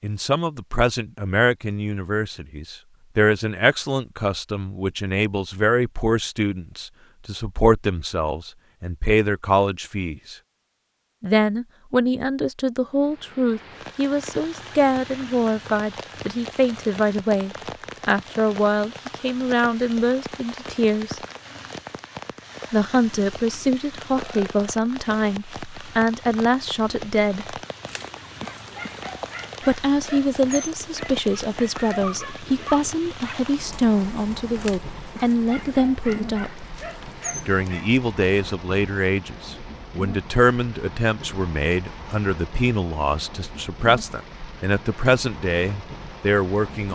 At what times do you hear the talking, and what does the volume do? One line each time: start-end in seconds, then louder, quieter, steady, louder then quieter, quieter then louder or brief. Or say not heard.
0.0-10.3 steady
11.2-21.2 steady
22.7-27.6 steady
29.6-46.9 steady.